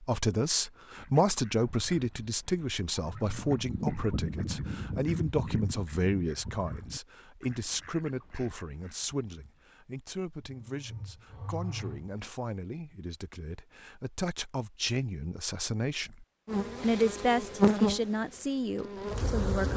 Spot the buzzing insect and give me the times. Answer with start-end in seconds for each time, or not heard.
16.4-19.7.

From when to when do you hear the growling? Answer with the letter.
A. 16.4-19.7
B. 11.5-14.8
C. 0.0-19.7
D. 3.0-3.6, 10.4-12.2
D.